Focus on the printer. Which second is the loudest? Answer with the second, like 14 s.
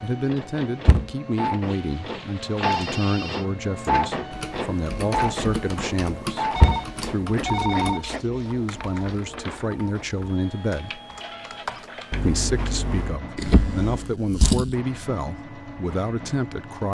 4 s.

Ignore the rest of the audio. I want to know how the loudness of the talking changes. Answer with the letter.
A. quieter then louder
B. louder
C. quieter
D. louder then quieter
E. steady
E.